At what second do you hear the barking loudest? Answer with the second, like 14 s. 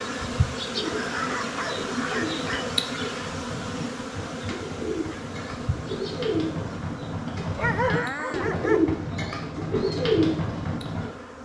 8 s.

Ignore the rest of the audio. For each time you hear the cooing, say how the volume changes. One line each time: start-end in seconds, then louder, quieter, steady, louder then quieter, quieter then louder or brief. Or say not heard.
0.7-11.1 louder.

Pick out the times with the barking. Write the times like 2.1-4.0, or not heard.
0.8-2.8, 7.4-8.8.